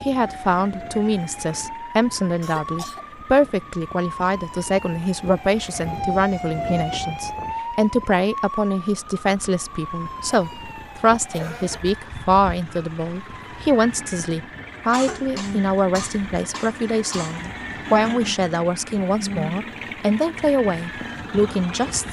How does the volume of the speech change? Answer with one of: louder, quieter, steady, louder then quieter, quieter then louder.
steady.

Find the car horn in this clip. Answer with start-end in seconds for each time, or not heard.
not heard.